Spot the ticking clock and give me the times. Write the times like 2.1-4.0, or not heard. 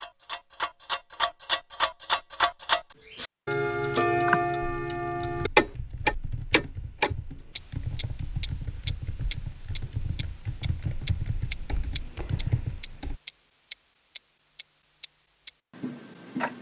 0.0-16.5.